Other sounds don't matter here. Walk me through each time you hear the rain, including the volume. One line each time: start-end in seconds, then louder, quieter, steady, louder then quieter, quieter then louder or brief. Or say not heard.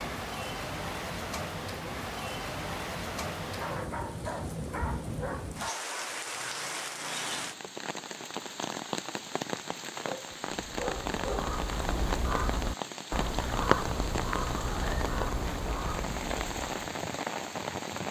0.0-18.0 steady.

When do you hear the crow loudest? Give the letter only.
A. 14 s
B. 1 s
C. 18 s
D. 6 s
A.